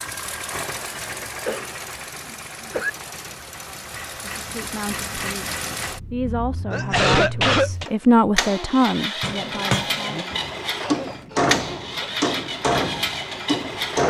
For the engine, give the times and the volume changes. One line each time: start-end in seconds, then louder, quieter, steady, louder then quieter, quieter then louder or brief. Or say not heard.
0.0-14.0 louder.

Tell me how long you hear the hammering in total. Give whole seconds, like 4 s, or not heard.
5 s.